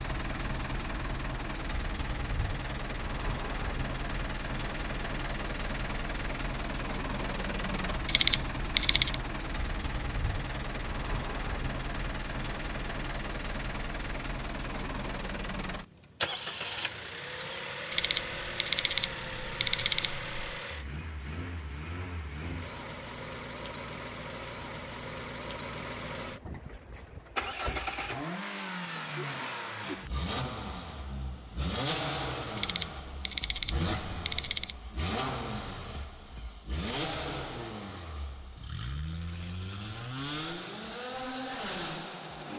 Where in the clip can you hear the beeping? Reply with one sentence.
You can hear the beeping from 8.1 to 9.2 s, from 17.9 to 20.5 s and from 32.5 to 34.8 s.